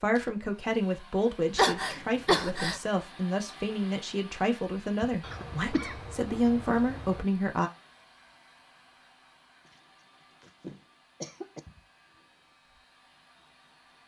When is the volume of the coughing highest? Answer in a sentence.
The loudest moment of the coughing is at 2 seconds.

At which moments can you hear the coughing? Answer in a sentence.
The coughing can be heard from 1.5 to 2.8 s, from 5.2 to 7.2 s and from 10.4 to 11.6 s.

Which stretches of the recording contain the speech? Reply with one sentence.
The speech can be heard from 0.0 to 7.7 s.